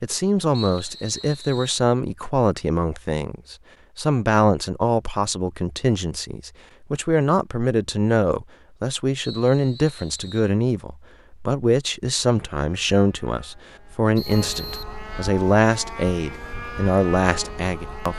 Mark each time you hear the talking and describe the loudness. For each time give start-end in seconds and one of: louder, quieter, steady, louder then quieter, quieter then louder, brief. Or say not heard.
0.0-18.1 steady.